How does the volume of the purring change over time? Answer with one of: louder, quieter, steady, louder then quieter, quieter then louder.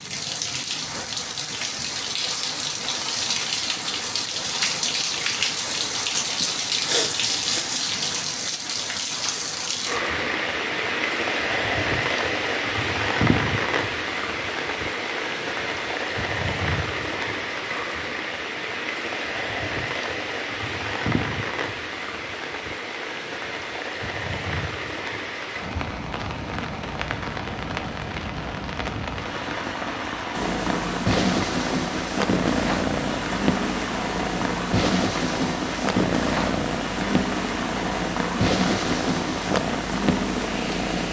steady.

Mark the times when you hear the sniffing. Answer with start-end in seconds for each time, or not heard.
6.4-7.8.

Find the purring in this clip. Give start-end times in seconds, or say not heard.
30.3-41.0.